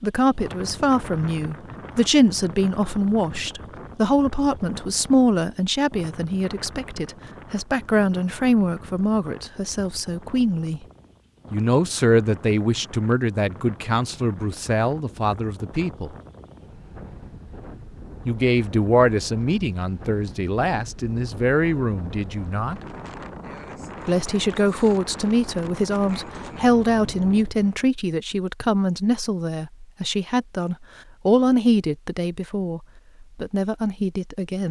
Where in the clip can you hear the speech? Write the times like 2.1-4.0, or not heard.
0.0-10.8, 11.5-16.1, 18.2-22.8, 24.1-34.6.